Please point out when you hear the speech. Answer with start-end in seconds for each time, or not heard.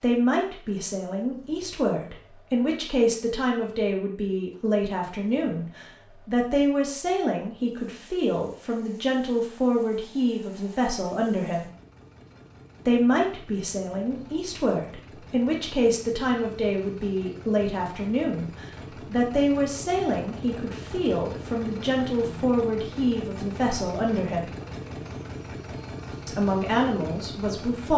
0.0-11.7, 12.8-24.5, 26.2-27.9.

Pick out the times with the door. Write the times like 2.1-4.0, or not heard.
not heard.